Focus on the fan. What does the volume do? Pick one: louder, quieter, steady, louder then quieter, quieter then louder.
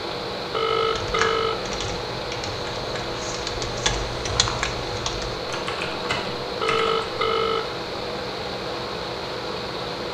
steady.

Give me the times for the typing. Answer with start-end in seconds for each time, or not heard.
0.8-7.1.